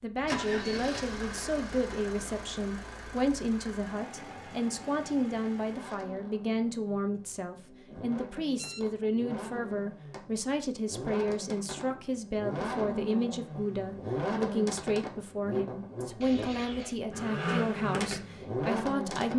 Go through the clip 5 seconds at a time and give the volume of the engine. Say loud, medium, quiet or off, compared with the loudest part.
medium, medium, loud, loud.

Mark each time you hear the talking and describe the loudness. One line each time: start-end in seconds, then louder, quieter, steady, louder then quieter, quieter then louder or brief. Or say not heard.
0.0-19.3 steady.